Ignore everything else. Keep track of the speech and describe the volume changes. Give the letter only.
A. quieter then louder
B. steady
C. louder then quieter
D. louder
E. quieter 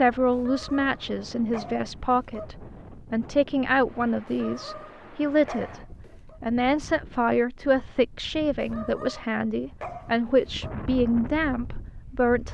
B.